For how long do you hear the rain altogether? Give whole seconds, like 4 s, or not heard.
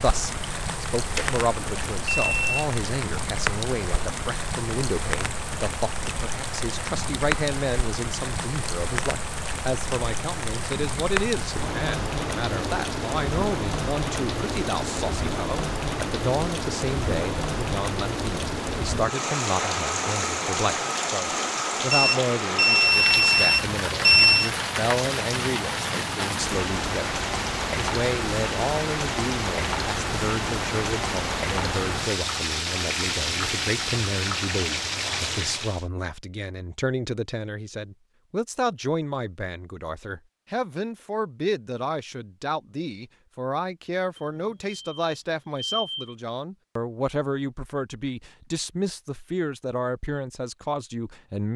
36 s.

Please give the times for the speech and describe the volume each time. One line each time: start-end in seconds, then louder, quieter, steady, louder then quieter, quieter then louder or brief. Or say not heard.
0.0-51.5 steady.